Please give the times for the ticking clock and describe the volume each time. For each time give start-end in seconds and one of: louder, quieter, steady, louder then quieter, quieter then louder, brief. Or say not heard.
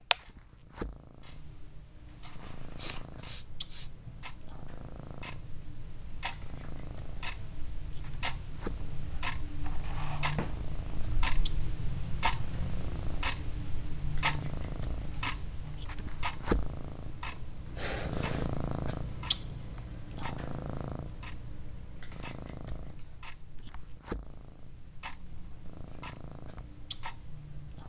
0.0-27.8 louder then quieter.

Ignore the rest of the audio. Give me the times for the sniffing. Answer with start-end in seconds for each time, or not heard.
2.8-4.3, 17.3-18.5.